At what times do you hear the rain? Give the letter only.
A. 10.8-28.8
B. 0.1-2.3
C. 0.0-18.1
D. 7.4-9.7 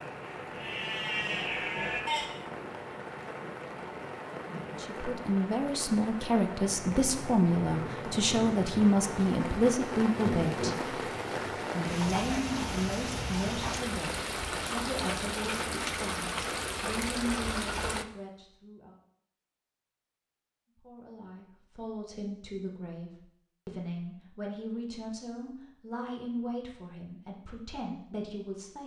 C.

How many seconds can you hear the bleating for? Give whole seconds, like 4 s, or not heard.
2 s.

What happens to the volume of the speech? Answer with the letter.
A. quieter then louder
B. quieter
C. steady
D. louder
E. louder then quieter
B.